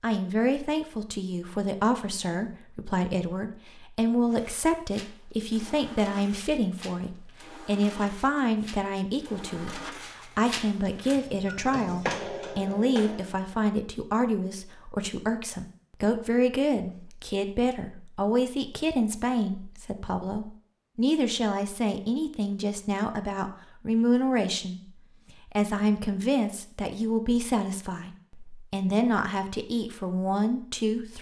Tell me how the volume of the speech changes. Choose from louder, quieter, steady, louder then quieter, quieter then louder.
steady.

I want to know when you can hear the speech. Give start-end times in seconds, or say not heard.
0.0-24.8, 25.5-31.1.